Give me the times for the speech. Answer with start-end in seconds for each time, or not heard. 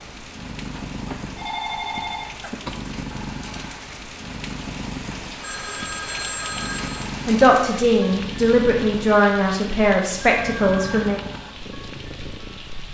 7.2-11.2.